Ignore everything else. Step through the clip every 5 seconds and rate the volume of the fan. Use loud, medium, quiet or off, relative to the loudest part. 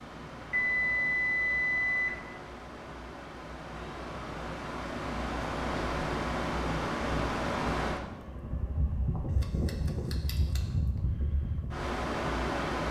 medium, loud, loud.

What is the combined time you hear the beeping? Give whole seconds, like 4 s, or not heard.
2 s.